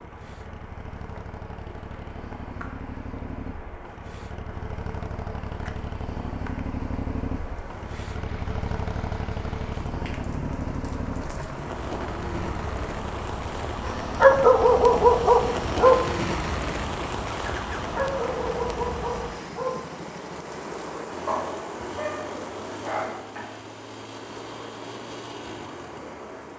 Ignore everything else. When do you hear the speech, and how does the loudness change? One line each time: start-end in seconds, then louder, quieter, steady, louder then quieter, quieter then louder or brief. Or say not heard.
not heard.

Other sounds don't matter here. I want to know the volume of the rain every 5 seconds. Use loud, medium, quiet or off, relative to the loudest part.
quiet, medium, loud, loud, medium, medium.